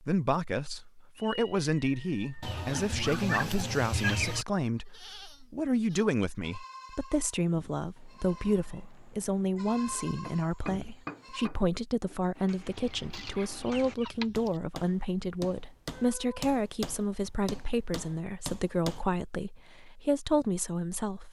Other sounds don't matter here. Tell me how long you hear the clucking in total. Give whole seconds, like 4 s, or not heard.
4 s.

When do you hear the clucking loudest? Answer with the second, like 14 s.
4 s.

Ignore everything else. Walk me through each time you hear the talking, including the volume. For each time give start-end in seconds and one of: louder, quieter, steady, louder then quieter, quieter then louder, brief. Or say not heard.
0.0-21.2 steady.